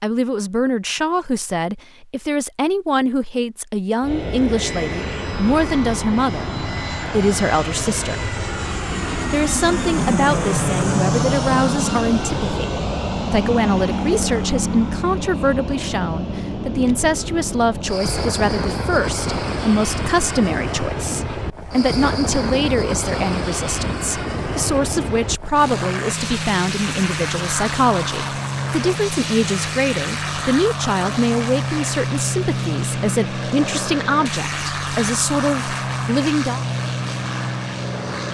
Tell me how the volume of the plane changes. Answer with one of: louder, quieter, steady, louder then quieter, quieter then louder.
steady.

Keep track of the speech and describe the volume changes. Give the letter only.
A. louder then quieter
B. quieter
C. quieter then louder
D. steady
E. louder
D.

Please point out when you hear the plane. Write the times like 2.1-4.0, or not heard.
4.0-38.2.